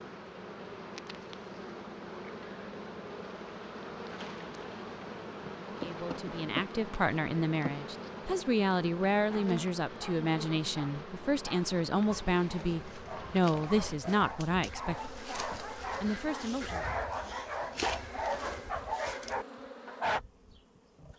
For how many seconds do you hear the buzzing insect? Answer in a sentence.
The buzzing insect can be heard for 21 seconds in total.